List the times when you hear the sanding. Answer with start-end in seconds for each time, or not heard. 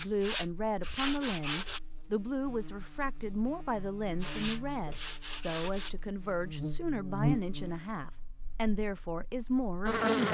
0.0-1.8, 4.2-6.0.